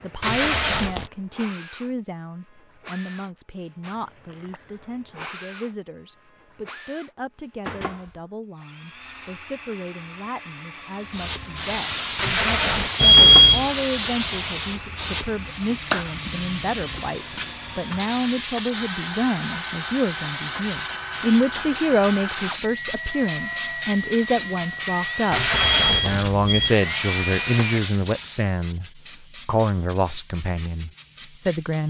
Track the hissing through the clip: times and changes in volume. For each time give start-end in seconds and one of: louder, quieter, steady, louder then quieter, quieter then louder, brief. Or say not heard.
11.1-31.8 quieter.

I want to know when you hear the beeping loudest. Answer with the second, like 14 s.
13 s.